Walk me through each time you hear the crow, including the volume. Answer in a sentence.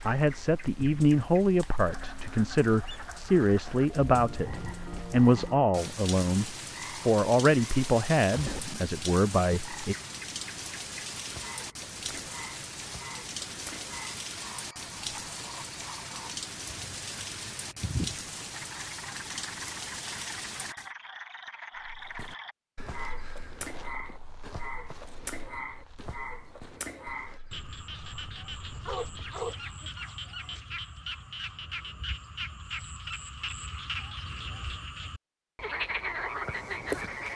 The crow can't be heard in this clip.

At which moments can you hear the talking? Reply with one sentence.
You can hear the talking from 0.1 to 9.9 s.